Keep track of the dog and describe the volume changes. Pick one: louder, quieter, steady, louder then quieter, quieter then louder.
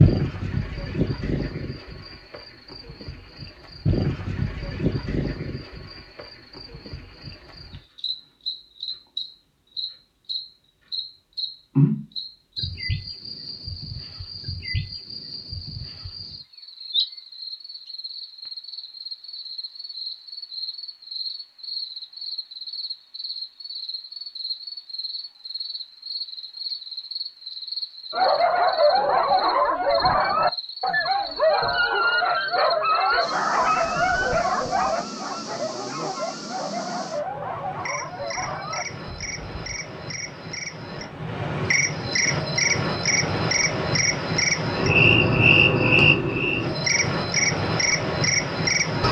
quieter.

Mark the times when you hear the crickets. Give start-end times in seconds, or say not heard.
0.0-49.0.